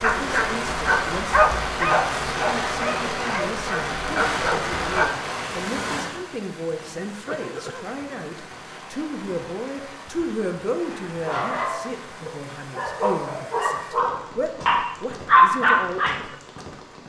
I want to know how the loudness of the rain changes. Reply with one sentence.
The loudness of the rain goes down.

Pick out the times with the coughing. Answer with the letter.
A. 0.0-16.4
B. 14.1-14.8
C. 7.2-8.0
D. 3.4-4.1
C.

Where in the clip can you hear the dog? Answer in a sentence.
The dog can be heard from 0.0 to 5.1 s and from 10.8 to 16.2 s.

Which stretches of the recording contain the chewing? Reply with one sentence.
The chewing can't be heard in this clip.